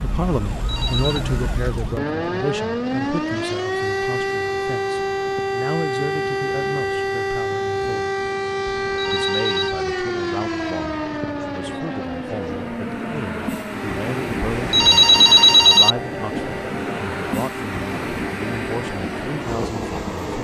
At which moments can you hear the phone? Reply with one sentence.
The phone can be heard from 0.6 to 1.2 s, from 8.8 to 9.8 s and from 14.4 to 15.9 s.